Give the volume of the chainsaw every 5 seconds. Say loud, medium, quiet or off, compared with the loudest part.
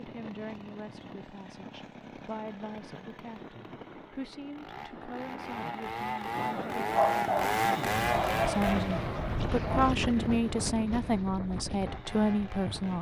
quiet, loud, quiet.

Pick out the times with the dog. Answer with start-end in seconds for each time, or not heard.
6.5-9.9.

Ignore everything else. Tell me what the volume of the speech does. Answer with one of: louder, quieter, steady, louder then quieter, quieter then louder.
louder.